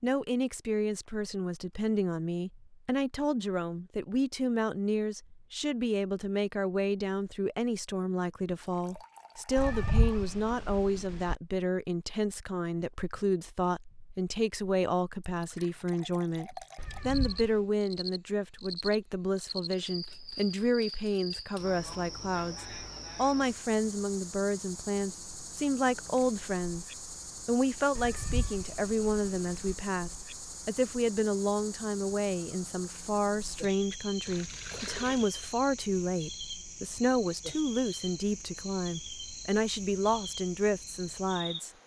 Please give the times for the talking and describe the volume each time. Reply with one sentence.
You can hear the talking from 0.0 to 41.8 s, at a steady volume.